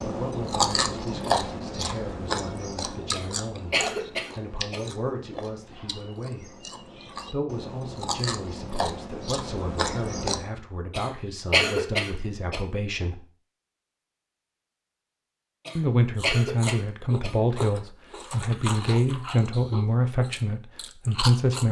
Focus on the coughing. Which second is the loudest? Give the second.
12 s.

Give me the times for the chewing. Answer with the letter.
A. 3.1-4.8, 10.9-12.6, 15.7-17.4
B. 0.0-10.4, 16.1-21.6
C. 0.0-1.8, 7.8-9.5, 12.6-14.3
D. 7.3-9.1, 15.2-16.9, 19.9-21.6
B.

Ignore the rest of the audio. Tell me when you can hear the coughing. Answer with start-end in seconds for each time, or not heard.
3.1-4.8, 10.9-12.6, 15.7-17.4.